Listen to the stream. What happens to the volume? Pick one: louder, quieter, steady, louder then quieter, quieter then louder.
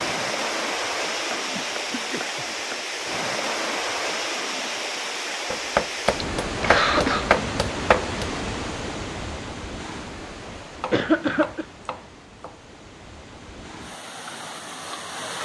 quieter.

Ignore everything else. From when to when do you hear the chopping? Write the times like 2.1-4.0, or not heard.
1.3-2.9, 5.5-8.3, 10.8-12.7.